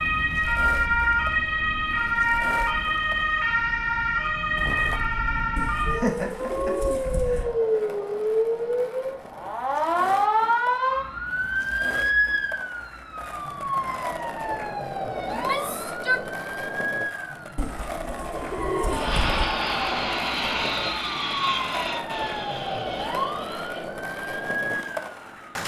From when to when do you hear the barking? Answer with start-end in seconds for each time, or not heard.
not heard.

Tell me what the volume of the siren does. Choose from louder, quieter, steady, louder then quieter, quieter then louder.
quieter.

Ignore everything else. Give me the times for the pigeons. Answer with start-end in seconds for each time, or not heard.
5.5-7.5, 17.6-19.4.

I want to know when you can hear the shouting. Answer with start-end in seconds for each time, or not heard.
15.3-16.3.